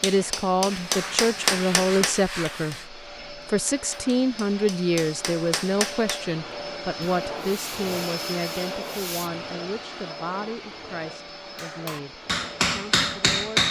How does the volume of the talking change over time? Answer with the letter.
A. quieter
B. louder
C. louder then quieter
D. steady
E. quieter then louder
A.